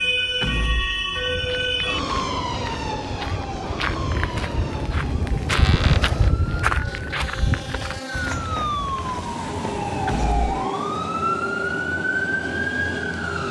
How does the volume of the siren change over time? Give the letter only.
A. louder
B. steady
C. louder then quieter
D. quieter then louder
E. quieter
D.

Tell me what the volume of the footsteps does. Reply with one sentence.
The loudness of the footsteps goes up, then down.